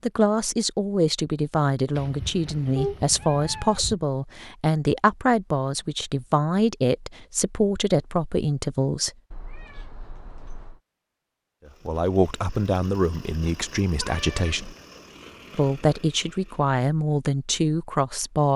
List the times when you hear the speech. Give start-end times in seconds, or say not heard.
0.0-9.1, 11.8-14.8, 15.5-18.5.